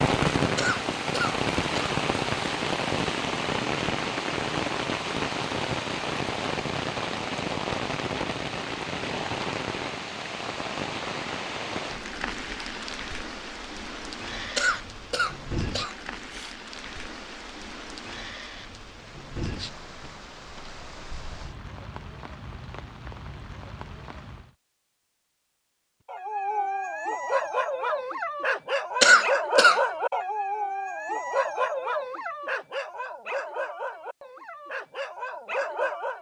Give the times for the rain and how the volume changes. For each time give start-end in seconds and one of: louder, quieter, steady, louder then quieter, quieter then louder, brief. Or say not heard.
0.0-24.6 quieter.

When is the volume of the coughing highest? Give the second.
29 s.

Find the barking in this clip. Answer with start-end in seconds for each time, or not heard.
26.1-36.1.